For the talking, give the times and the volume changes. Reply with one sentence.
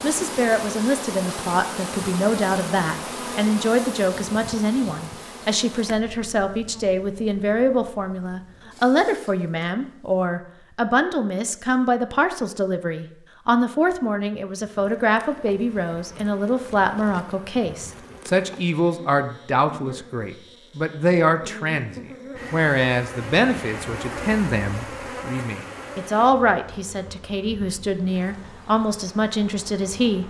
You can hear the talking from 0.0 to 30.2 s, at a steady volume.